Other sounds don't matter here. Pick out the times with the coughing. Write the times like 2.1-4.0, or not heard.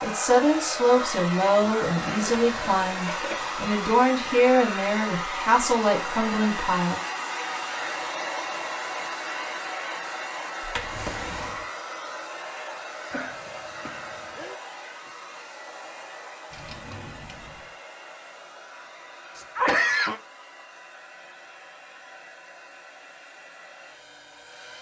1.6-3.5, 13.1-14.6, 19.4-20.2.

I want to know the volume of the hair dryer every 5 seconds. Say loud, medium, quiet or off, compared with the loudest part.
loud, loud, medium, quiet, quiet.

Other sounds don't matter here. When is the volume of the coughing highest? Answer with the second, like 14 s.
20 s.